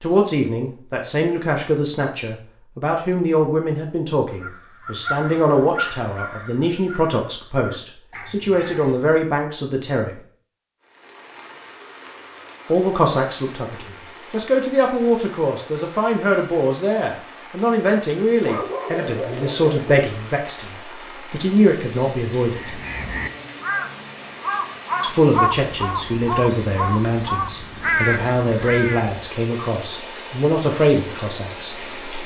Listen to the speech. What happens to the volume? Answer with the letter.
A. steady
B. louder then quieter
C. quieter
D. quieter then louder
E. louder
A.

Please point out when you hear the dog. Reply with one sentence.
The dog can be heard from 18.4 to 20.1 s.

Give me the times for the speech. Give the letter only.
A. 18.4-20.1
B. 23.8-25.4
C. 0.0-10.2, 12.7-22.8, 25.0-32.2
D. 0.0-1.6
C.